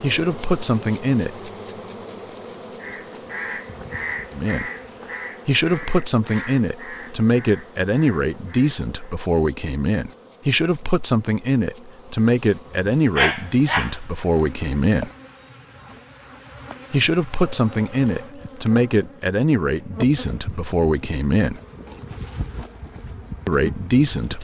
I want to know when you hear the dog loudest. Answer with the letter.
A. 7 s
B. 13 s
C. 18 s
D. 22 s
B.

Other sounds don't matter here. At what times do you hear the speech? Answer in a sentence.
You can hear the speech from 0.0 to 1.4 s, from 4.3 to 4.7 s, from 5.5 to 15.1 s, from 16.9 to 21.6 s and from 23.4 to 24.3 s.